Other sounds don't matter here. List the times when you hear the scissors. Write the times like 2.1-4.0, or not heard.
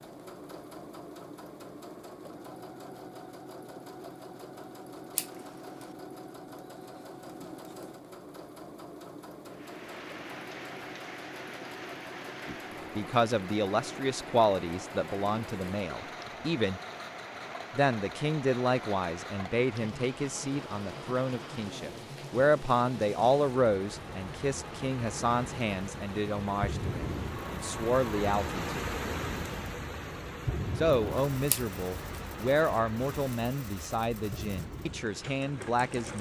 5.2-5.8, 31.4-32.2.